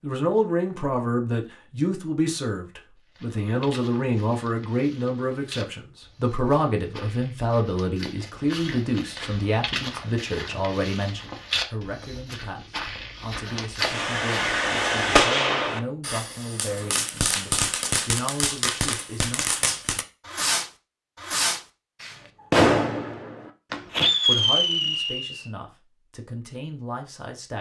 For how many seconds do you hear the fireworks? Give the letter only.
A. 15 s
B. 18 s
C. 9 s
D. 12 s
D.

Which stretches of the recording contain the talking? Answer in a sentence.
The talking can be heard from 0.0 to 19.8 s and from 24.2 to 27.5 s.